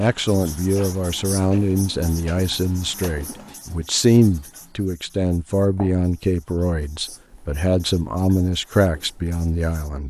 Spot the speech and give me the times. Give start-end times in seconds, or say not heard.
0.0-10.0.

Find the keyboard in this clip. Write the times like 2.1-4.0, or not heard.
not heard.